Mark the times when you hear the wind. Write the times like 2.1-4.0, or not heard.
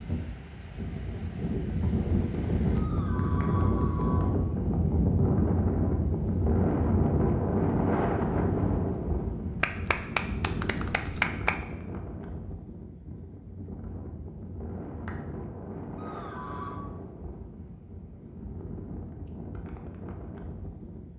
0.0-21.1.